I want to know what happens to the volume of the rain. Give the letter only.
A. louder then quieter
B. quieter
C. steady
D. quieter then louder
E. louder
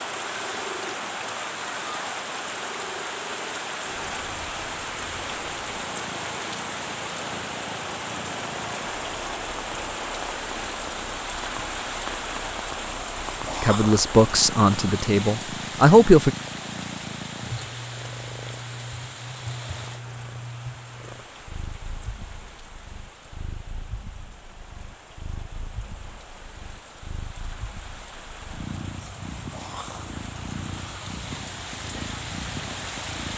D.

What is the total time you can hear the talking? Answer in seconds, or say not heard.
3 s.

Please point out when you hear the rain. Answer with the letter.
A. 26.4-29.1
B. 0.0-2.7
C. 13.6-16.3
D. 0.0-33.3
D.